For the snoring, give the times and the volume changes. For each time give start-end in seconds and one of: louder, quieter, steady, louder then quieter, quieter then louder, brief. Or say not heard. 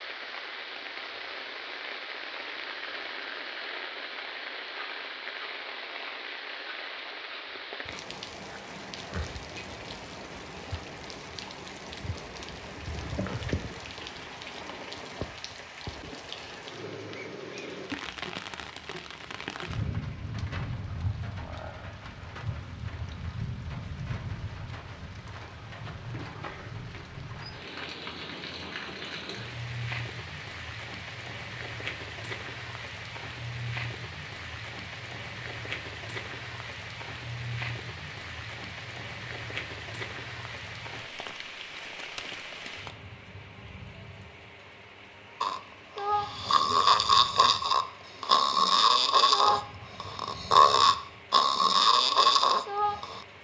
45.4-53.2 steady.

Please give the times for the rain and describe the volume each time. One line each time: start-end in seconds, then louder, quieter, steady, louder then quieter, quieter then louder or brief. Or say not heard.
0.0-53.3 steady.